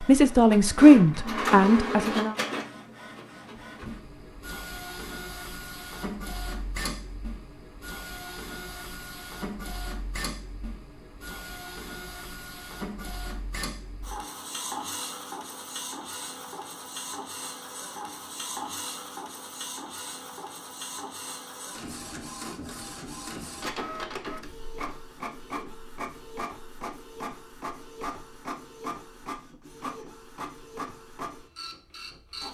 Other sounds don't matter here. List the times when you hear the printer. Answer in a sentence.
The printer can be heard from 0.0 to 32.4 s.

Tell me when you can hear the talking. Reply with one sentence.
You can hear the talking from 0.0 to 2.4 s.